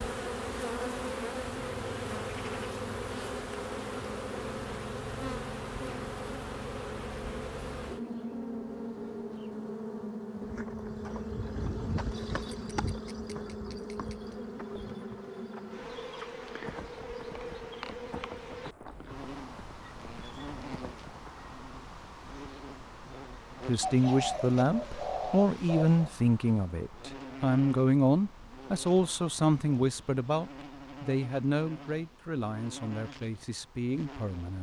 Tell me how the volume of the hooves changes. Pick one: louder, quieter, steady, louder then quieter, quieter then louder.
quieter.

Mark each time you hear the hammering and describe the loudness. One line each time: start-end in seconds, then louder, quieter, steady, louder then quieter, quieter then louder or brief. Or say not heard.
not heard.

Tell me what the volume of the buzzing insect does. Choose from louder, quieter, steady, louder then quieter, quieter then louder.
quieter.